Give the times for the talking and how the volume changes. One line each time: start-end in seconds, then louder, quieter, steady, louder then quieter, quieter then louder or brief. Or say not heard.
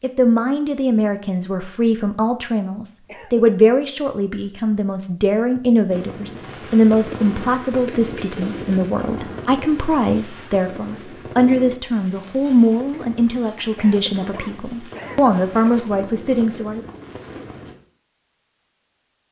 0.0-16.9 steady.